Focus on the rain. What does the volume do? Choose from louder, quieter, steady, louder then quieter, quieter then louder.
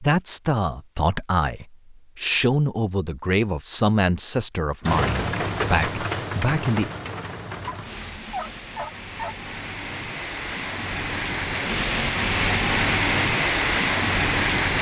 quieter then louder.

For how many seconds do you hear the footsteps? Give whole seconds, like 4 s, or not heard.
not heard.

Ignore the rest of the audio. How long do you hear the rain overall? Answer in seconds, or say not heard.
10 s.